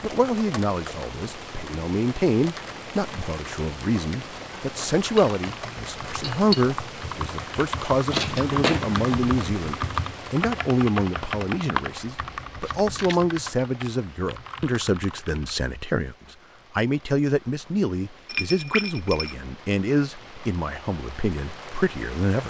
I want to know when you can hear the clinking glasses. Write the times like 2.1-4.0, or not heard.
5.2-6.7, 18.2-19.4.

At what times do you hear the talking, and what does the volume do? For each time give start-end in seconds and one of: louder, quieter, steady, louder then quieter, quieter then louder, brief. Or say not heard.
0.0-22.4 steady.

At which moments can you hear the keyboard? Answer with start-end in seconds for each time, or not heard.
5.0-15.6.